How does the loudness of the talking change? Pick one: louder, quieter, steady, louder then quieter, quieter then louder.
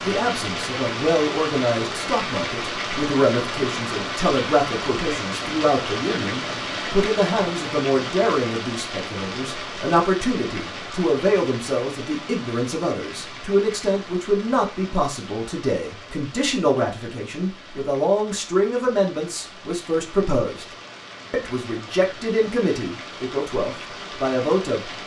steady.